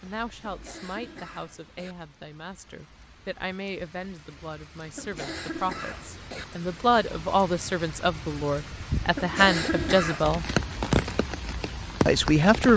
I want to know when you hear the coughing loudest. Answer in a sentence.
The volume of the coughing peaks at 10 seconds.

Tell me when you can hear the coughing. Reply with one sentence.
You can hear the coughing from 0.4 to 1.9 s, from 5.0 to 6.5 s and from 9.2 to 10.2 s.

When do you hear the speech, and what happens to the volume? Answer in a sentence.
The speech can be heard from 0.0 to 10.4 s, getting louder; and briefly from 12.1 to 12.7 s.